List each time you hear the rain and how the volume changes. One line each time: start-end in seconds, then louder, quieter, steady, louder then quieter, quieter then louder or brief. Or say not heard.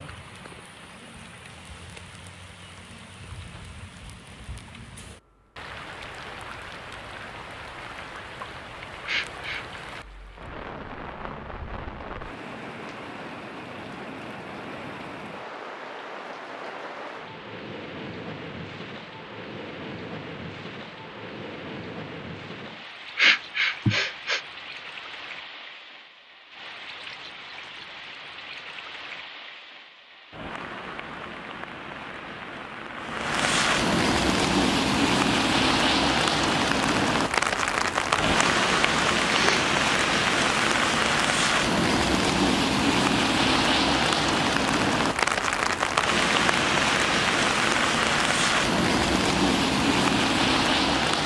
0.0-51.2 louder.